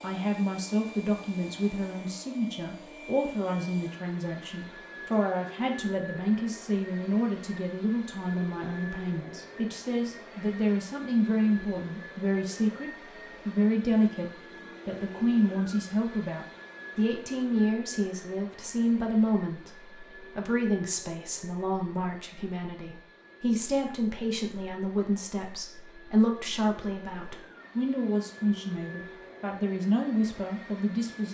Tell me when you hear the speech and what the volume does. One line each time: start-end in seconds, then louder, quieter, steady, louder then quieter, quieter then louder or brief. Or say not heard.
0.0-31.2 steady.